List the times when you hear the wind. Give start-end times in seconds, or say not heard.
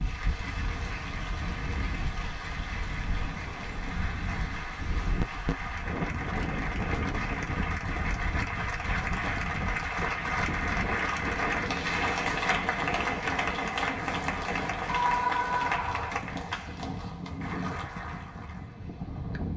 0.0-19.5.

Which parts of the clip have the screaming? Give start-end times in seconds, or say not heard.
14.8-16.2.